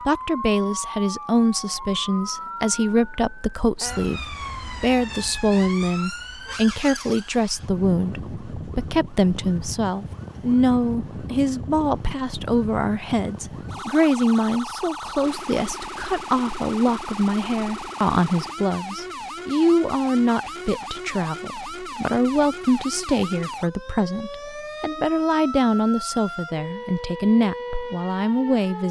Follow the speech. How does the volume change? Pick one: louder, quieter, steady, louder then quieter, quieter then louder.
steady.